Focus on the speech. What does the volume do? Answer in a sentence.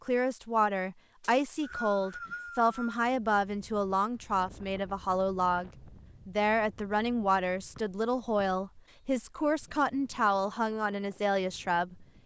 The loudness of the speech stays about the same.